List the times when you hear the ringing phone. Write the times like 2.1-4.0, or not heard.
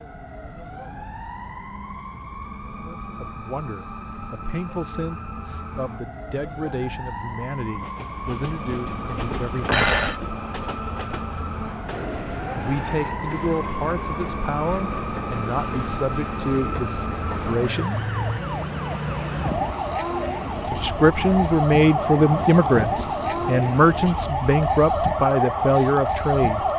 9.2-10.2.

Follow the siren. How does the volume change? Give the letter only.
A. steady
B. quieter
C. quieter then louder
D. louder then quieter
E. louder
E.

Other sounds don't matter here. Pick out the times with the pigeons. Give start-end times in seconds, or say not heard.
not heard.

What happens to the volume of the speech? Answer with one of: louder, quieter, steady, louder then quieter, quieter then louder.
louder.